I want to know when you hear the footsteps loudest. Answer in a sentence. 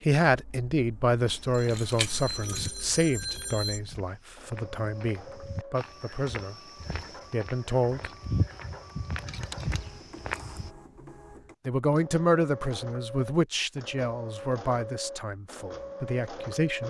The loudest moment of the footsteps is at 8 seconds.